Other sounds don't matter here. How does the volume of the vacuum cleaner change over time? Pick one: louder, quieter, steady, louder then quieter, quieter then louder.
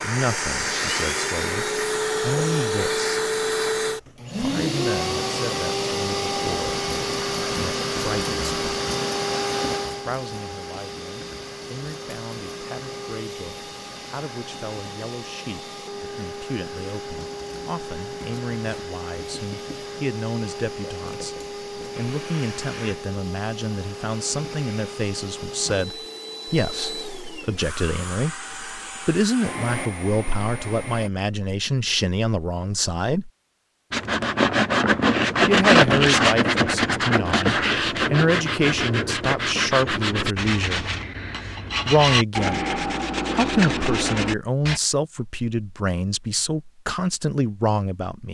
quieter.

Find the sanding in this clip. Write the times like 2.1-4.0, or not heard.
33.9-44.8.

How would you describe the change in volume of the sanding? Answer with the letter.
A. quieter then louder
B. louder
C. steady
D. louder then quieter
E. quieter
E.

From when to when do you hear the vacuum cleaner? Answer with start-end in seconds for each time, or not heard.
0.0-31.1.